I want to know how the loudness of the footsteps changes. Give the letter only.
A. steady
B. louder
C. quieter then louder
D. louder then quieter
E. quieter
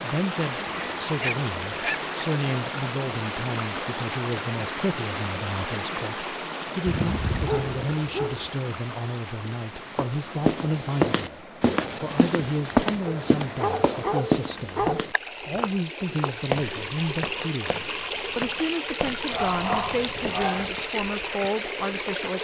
E.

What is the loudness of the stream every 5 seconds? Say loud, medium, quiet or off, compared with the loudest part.
loud, loud, medium, loud, loud.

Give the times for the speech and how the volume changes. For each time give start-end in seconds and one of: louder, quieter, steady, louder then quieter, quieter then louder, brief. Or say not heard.
0.0-22.3 steady.